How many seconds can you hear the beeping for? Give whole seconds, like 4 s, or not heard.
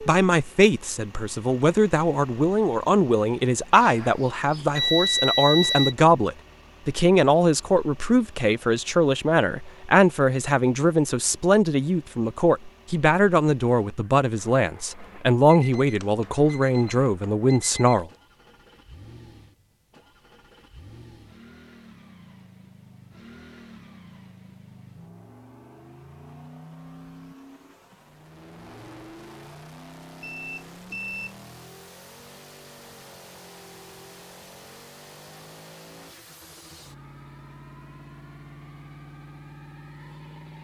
6 s.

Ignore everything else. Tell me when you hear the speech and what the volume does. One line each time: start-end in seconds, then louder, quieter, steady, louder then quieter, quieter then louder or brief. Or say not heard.
0.0-18.1 steady.